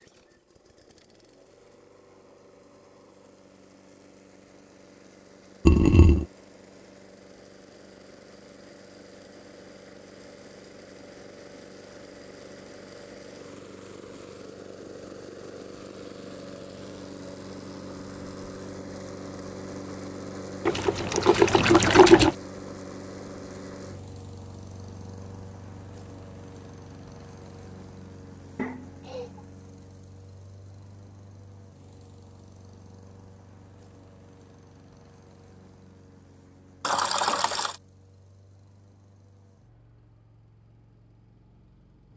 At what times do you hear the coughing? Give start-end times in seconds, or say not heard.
28.6-29.4.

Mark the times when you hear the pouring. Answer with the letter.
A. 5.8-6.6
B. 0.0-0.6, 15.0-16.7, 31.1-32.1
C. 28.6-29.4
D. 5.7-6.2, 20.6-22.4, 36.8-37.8
D.